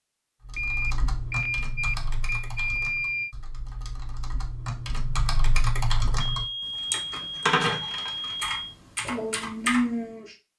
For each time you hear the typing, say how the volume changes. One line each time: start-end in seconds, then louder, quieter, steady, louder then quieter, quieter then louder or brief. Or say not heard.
0.5-10.3 quieter then louder.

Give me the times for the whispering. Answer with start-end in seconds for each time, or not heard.
not heard.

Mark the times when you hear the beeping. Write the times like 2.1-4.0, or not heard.
0.6-3.4, 6.2-8.8.